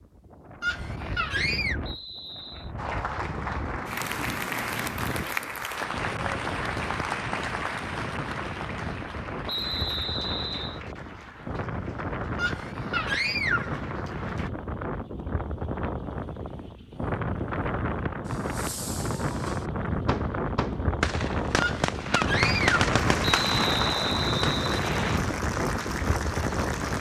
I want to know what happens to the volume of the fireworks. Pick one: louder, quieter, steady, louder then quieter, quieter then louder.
louder.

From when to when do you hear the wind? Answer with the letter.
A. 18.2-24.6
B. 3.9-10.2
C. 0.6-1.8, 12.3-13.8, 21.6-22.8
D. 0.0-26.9
D.